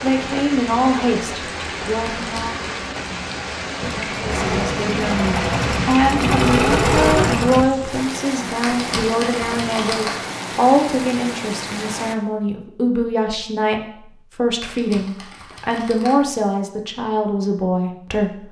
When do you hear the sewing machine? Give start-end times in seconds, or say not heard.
3.8-7.7.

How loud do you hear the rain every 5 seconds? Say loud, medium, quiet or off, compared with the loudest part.
loud, loud, loud, off.